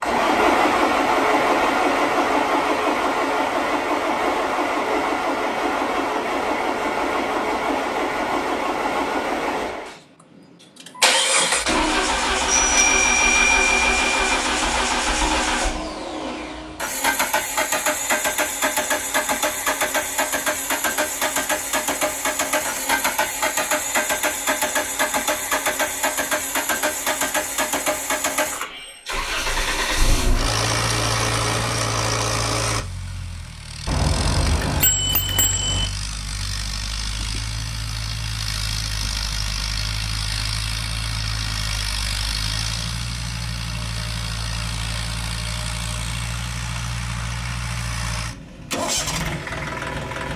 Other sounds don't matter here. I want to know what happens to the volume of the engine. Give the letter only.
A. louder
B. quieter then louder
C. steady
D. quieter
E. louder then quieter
D.